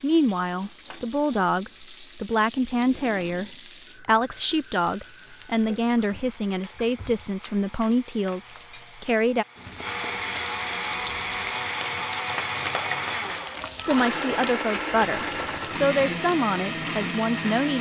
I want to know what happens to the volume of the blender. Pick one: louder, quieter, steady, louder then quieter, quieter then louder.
louder.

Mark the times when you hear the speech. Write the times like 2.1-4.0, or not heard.
0.0-9.4, 13.8-17.7.